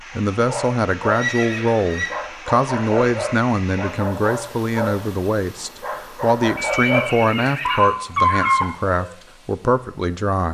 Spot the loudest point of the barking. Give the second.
8 s.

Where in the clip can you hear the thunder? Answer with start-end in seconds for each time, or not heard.
not heard.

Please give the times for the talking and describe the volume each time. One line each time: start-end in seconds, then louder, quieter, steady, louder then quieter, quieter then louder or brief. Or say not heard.
0.1-10.5 steady.